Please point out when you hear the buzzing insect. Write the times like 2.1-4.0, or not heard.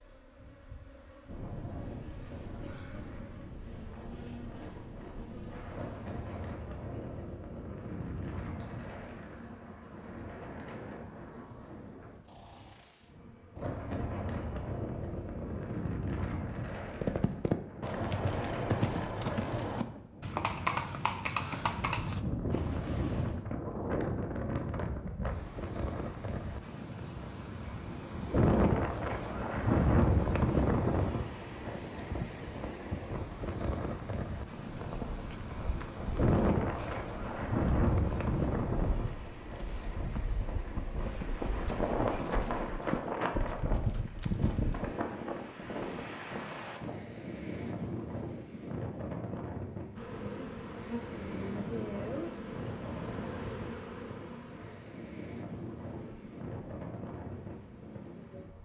0.0-15.8, 50.0-58.5.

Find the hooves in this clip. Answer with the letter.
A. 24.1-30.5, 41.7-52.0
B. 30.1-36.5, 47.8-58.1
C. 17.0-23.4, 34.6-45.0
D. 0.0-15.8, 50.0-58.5
C.